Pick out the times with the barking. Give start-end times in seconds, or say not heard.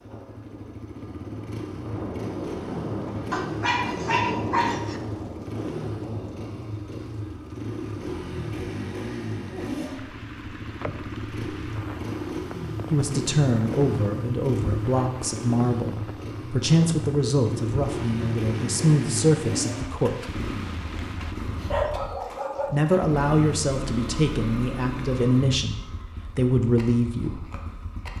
3.3-5.0, 21.1-22.9.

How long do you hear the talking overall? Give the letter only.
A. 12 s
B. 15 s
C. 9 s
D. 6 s
A.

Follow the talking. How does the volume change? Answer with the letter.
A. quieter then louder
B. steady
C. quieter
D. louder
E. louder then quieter
B.